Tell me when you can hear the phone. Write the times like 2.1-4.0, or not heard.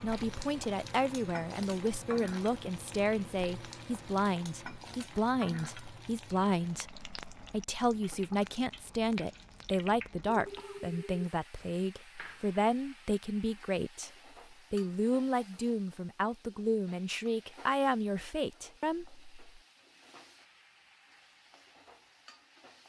10.3-11.3.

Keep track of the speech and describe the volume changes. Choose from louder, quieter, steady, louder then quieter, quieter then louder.
steady.